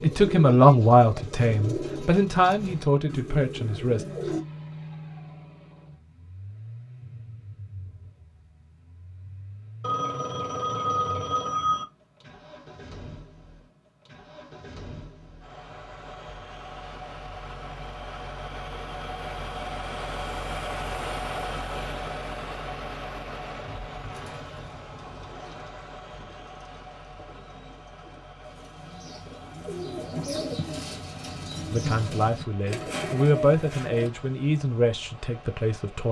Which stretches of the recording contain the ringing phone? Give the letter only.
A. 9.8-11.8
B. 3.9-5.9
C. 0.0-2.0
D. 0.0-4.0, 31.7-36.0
A.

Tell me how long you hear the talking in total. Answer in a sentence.
The talking can be heard for 8 seconds in total.